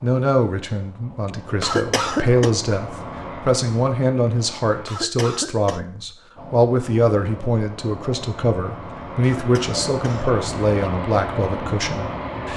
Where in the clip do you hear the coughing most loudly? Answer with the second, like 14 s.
2 s.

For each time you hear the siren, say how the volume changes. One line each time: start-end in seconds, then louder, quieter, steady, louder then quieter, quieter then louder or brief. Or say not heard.
not heard.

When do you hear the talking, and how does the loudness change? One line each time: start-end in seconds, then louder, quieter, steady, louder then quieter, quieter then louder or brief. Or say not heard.
0.0-12.5 steady.